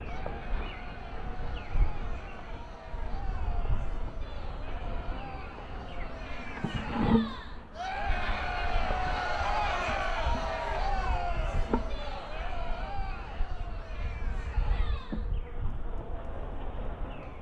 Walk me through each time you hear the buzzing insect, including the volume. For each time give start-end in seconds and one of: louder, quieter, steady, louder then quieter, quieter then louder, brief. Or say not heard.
0.0-17.3 louder then quieter.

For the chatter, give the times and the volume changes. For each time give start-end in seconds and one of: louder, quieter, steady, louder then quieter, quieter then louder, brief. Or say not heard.
0.0-17.3 louder then quieter.